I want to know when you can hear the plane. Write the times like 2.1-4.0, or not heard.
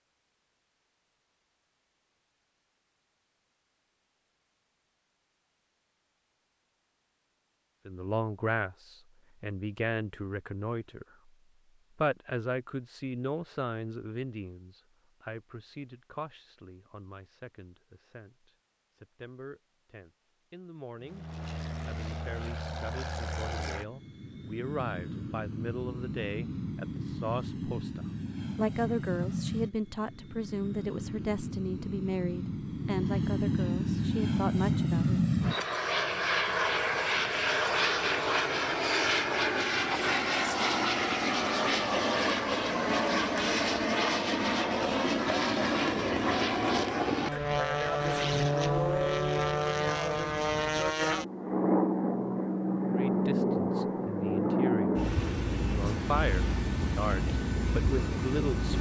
21.0-58.7.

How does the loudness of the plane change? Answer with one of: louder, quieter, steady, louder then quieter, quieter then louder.
louder.